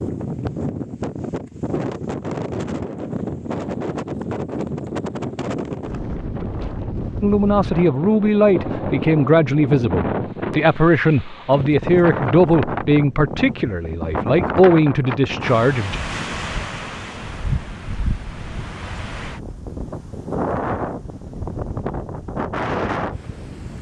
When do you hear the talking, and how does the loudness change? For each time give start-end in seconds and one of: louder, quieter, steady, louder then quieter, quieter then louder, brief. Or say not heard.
7.2-16.0 steady.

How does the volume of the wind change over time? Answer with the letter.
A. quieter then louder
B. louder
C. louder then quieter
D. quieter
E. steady
E.